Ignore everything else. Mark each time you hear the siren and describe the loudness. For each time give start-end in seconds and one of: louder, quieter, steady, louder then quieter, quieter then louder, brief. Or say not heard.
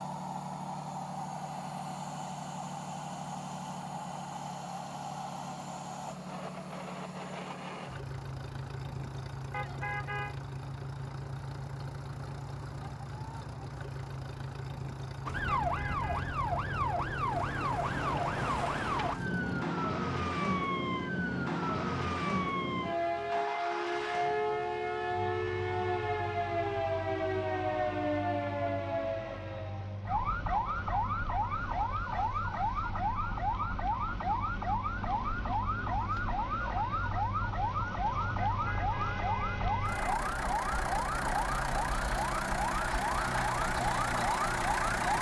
15.2-45.1 steady.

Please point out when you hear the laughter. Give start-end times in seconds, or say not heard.
not heard.